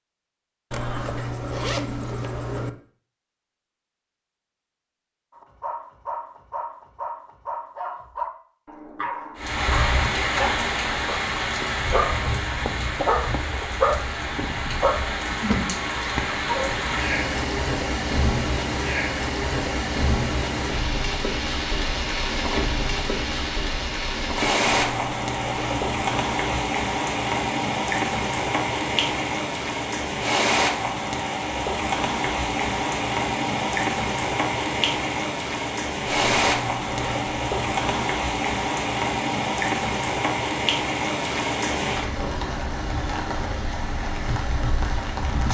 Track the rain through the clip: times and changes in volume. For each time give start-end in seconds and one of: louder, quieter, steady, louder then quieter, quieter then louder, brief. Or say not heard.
9.3-45.4 steady.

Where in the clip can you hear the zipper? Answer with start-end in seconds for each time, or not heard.
0.7-2.7, 24.6-26.6, 36.0-38.1.